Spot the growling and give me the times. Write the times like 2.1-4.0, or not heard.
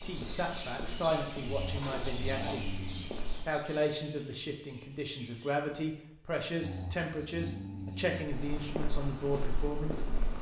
1.4-3.1, 6.6-8.7.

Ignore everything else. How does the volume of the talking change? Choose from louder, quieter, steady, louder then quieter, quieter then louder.
steady.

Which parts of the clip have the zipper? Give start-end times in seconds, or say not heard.
1.8-2.7.